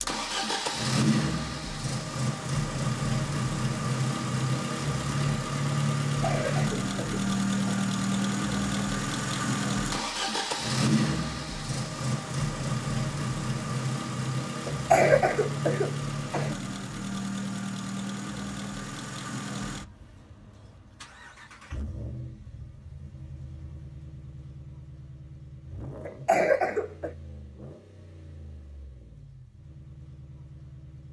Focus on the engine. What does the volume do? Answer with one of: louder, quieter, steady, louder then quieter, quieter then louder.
quieter.